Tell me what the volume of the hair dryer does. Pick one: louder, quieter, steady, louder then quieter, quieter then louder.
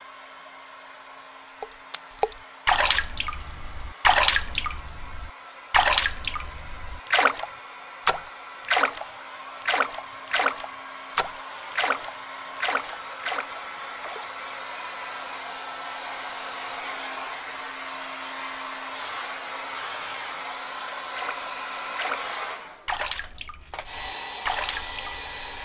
louder.